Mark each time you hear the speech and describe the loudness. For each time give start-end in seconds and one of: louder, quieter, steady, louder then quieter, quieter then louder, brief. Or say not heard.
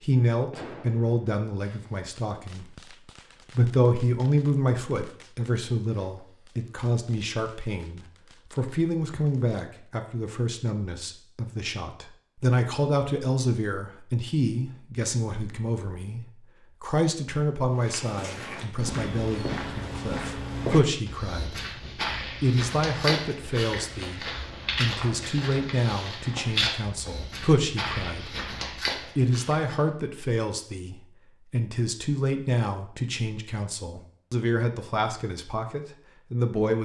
0.0-36.7 steady.